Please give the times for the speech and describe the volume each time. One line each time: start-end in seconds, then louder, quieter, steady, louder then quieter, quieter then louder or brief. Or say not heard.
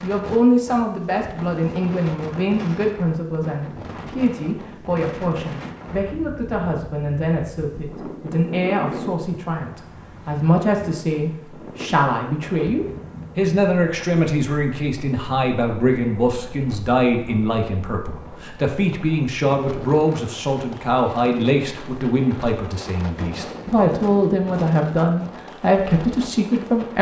0.0-26.9 steady.